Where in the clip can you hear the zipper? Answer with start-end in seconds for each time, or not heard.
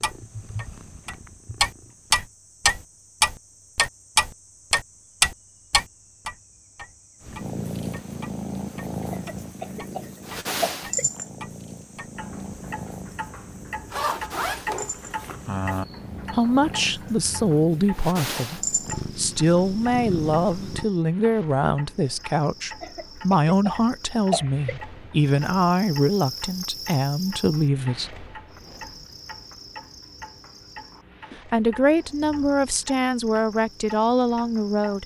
13.9-15.8.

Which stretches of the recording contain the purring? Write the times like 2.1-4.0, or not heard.
0.0-2.3, 7.2-20.9.